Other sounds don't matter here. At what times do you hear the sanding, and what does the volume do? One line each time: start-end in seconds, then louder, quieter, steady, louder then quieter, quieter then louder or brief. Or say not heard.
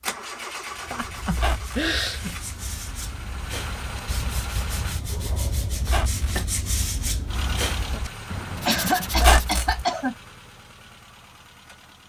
0.7-9.7 louder.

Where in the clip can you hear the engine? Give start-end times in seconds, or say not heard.
0.0-5.0, 7.2-12.0.